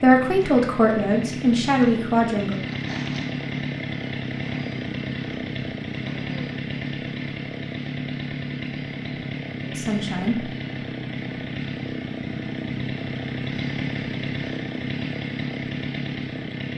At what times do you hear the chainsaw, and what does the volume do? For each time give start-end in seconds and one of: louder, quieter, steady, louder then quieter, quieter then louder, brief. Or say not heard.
0.0-16.7 steady.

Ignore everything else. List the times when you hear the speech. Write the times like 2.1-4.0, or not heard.
0.0-2.6, 9.7-10.5.